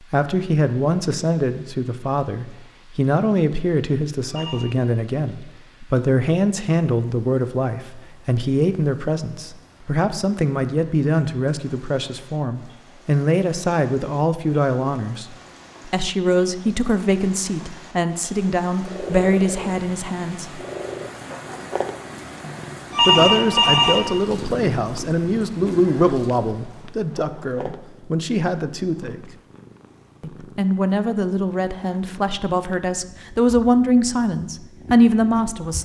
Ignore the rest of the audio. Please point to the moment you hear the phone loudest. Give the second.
23 s.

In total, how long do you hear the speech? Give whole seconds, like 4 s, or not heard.
32 s.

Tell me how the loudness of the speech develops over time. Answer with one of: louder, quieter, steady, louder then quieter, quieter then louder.
steady.